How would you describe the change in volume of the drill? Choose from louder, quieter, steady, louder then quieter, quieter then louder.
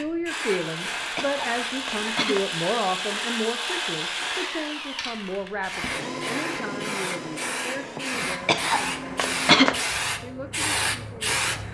quieter.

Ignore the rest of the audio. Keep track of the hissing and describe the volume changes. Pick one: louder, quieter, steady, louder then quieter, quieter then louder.
louder.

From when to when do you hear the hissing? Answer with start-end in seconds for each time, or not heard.
0.0-11.6.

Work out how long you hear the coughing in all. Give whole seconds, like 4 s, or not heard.
3 s.